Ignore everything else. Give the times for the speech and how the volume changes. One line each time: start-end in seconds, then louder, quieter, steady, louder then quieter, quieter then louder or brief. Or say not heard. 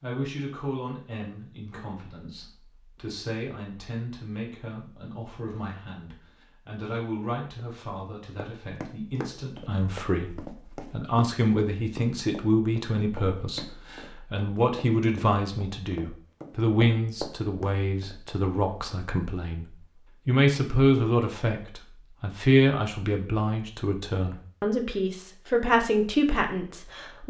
0.0-27.2 louder.